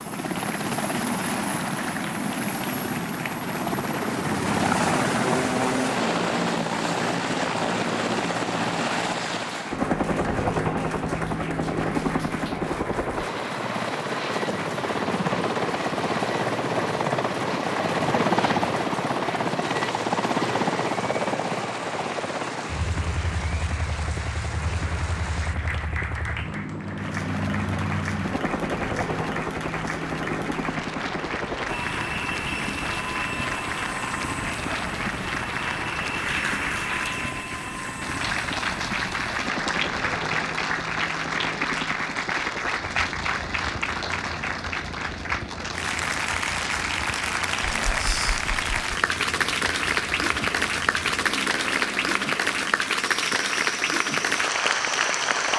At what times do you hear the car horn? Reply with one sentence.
You can't hear the car horn here.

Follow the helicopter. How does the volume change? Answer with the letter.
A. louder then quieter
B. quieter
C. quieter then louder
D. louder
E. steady
B.